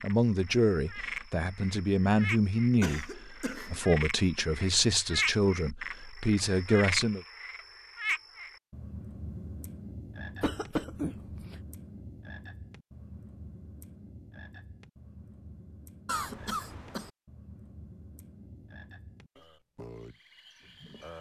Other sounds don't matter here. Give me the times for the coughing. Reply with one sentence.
The coughing can be heard from 2.8 to 4.0 s, from 10.4 to 11.6 s and from 16.1 to 17.1 s.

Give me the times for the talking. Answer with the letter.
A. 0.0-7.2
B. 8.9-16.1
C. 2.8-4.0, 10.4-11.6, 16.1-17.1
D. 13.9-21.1
A.